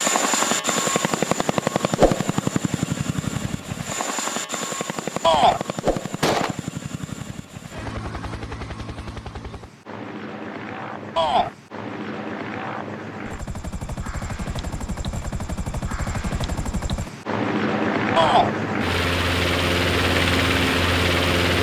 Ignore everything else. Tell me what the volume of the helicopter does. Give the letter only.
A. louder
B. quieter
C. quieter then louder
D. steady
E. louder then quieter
C.